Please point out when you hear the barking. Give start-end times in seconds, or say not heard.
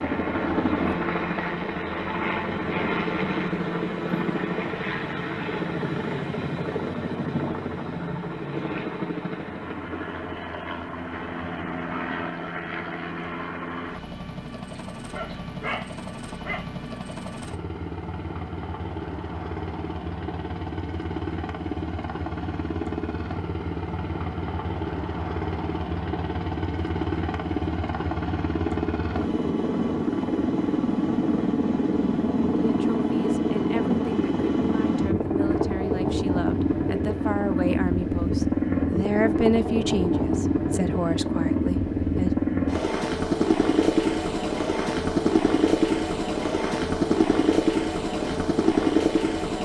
14.8-16.6.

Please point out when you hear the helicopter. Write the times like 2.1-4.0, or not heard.
0.0-49.5.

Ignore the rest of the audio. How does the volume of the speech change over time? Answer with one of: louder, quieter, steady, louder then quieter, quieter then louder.
louder then quieter.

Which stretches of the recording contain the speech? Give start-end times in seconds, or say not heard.
32.6-42.4.